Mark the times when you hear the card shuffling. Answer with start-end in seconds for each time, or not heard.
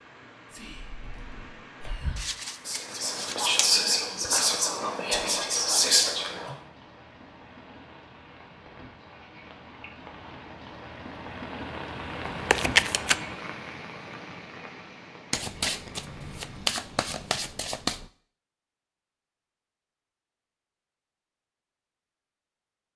2.1-3.5, 12.5-13.2, 15.3-18.1.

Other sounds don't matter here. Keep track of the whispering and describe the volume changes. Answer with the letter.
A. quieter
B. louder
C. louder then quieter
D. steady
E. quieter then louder
B.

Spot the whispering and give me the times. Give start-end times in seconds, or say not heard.
0.5-6.5.